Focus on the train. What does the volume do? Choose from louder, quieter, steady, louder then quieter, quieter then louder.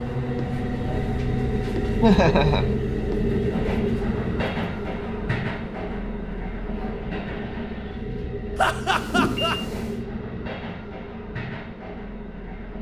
quieter.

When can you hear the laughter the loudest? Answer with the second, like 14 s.
2 s.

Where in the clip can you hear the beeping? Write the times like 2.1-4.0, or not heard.
8.9-9.9.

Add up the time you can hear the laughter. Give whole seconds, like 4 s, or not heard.
2 s.